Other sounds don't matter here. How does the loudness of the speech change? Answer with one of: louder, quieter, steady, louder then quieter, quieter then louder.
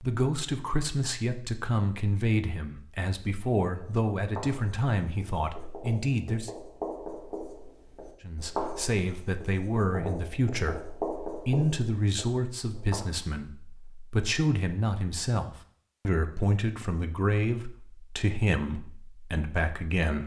steady.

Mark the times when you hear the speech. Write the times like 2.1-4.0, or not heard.
0.0-6.5, 8.2-20.2.